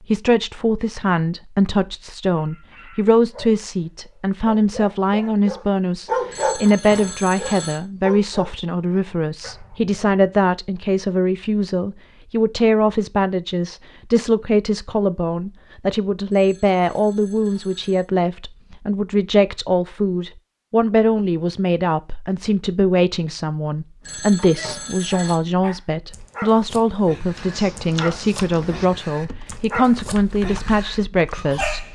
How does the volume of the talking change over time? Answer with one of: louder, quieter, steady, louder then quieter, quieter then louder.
steady.